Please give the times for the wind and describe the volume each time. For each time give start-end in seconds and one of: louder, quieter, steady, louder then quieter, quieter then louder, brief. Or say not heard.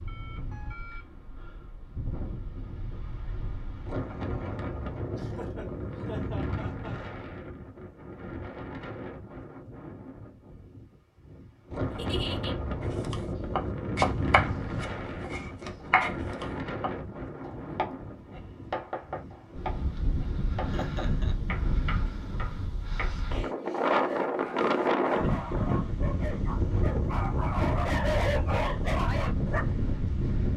0.0-30.5 louder.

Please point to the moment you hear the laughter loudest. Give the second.
12 s.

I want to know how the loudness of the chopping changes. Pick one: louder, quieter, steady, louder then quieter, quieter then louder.
quieter.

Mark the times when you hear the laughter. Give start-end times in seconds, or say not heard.
5.2-7.0, 11.9-12.6, 20.6-21.4.